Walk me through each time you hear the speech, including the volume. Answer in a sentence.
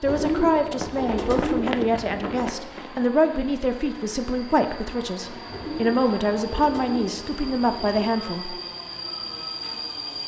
You can hear the speech from 0.0 to 8.6 s, at a steady volume.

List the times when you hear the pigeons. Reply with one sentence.
The pigeons can be heard from 0.1 to 2.5 s and from 5.5 to 8.2 s.